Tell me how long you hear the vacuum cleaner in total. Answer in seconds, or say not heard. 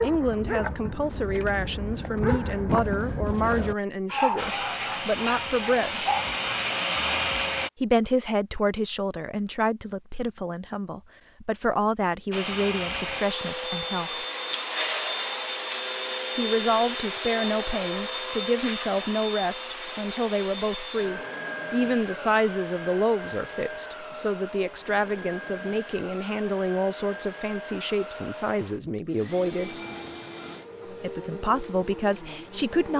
24 s.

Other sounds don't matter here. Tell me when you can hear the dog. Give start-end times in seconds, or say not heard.
0.0-6.4.